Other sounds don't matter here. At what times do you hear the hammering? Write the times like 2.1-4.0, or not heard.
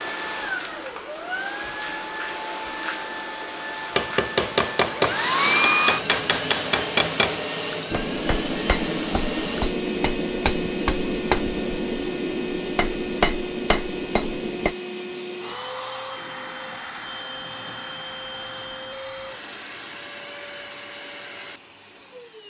4.0-14.8.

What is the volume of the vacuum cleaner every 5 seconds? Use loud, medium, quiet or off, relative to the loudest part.
medium, loud, medium, medium, quiet.